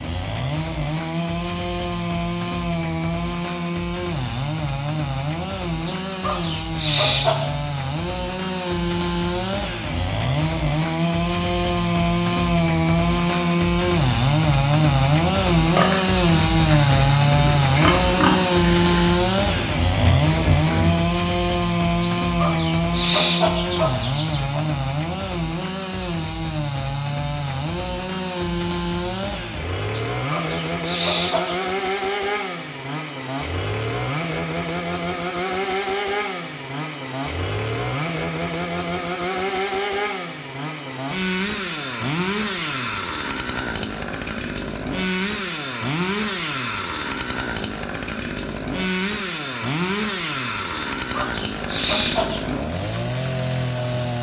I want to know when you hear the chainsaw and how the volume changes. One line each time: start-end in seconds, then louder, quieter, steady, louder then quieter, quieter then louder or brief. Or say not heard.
0.0-54.1 louder then quieter.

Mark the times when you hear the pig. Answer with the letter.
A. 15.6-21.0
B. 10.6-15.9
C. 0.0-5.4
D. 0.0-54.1
A.